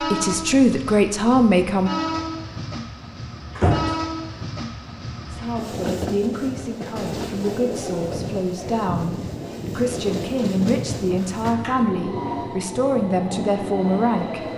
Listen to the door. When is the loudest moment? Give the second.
4 s.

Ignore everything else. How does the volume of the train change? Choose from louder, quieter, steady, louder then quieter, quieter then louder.
steady.